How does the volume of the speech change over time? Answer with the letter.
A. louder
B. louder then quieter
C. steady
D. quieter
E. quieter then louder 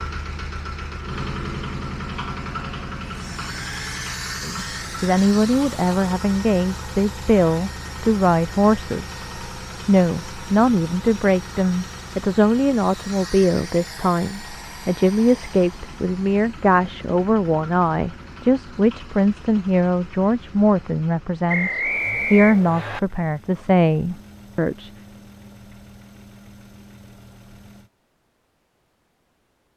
C.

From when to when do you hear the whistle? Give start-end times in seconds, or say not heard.
21.4-23.0.